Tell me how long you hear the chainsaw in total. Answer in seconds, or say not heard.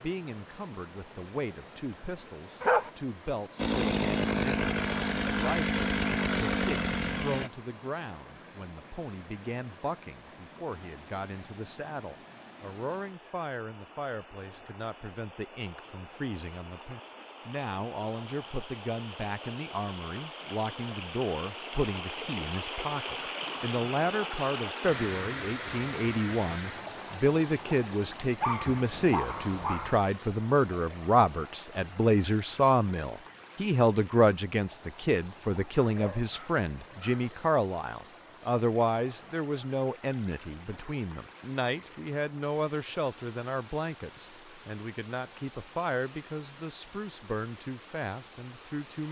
4 s.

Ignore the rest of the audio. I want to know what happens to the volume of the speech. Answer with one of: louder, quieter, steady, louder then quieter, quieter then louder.
louder then quieter.